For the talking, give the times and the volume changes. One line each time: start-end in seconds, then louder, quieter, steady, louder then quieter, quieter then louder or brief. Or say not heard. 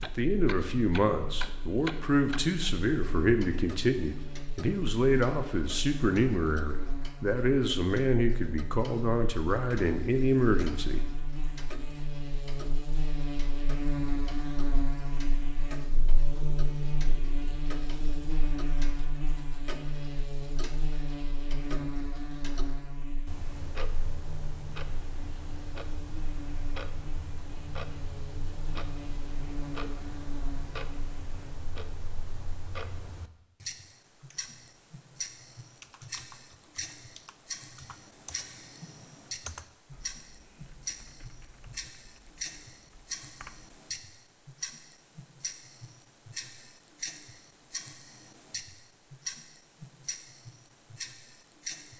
0.0-11.0 steady.